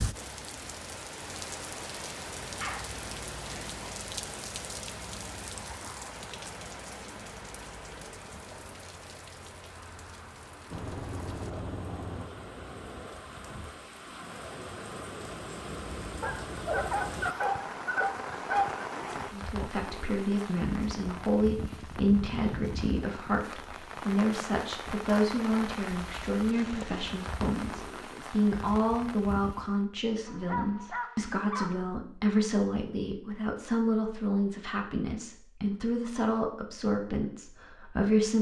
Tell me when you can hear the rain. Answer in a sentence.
You can hear the rain from 0.0 to 29.9 s.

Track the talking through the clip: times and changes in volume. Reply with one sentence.
You can hear the talking from 19.3 to 38.3 s, at a steady volume.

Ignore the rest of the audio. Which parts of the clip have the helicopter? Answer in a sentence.
You can hear the helicopter from 10.7 to 12.2 s.